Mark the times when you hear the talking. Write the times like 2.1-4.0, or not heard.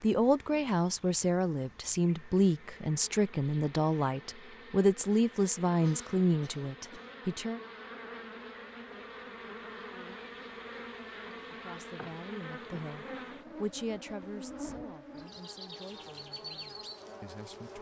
0.0-7.6, 11.5-17.7.